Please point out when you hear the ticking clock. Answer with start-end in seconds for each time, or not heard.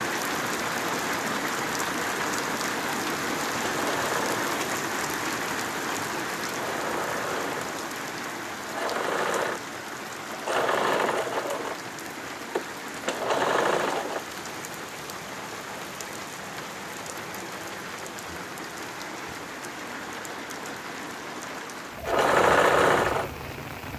not heard.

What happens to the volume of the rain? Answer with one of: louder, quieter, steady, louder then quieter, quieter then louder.
quieter.